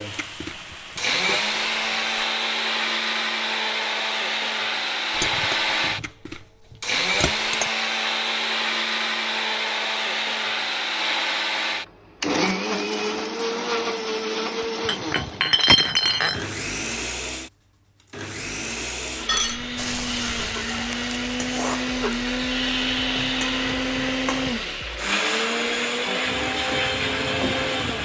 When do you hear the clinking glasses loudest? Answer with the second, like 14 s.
16 s.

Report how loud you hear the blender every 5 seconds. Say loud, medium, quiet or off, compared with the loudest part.
loud, loud, loud, medium, loud, loud.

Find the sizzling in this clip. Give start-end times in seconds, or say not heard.
0.0-2.1, 19.8-27.9.